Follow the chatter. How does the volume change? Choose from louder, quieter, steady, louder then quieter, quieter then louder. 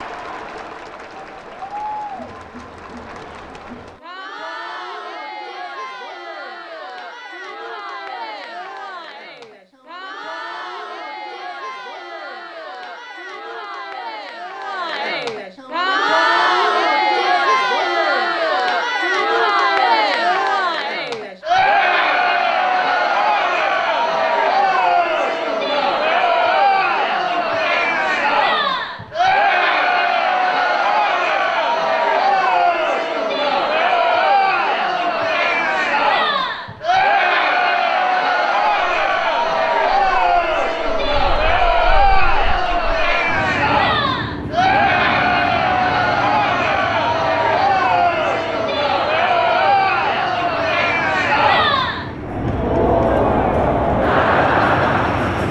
louder.